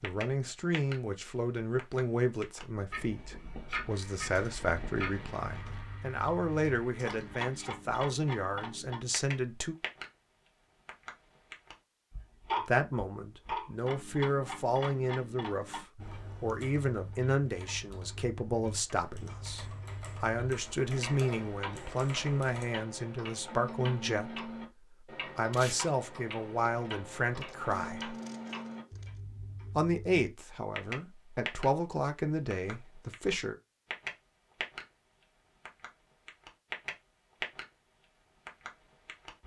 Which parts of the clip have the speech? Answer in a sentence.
The speech can be heard from 0.0 to 9.8 s, from 12.6 to 28.1 s and from 29.8 to 33.5 s.